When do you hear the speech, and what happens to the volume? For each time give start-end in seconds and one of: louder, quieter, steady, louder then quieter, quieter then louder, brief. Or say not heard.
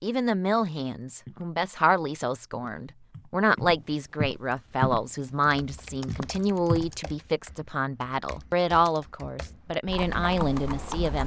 0.0-11.2 steady.